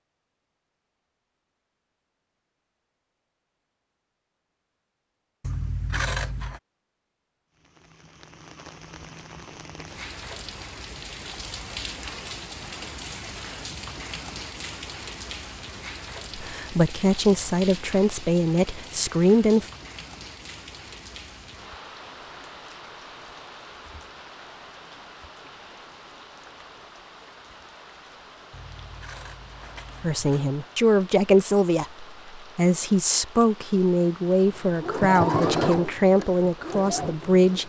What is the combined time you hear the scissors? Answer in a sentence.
You can hear the scissors for 3 seconds altogether.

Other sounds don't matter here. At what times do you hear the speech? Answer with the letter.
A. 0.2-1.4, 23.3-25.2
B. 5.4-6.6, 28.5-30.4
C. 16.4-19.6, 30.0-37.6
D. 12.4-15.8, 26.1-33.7
C.